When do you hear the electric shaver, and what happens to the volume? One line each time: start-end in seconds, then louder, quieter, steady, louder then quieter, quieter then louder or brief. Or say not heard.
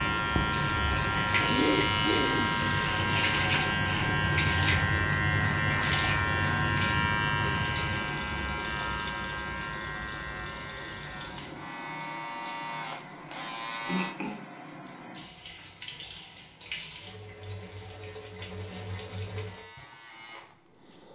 0.0-14.2 quieter
19.4-21.0 brief.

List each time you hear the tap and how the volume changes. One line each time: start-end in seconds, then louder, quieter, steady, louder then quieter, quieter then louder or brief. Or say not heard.
0.0-19.7 quieter.